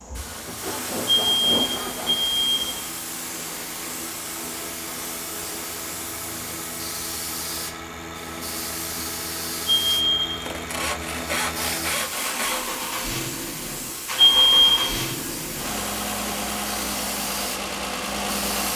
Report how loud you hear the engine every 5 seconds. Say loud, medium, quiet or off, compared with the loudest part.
medium, medium, loud, loud.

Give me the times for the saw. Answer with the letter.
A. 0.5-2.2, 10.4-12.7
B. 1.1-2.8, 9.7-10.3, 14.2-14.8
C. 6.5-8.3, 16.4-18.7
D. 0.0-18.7
A.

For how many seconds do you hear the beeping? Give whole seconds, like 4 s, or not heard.
3 s.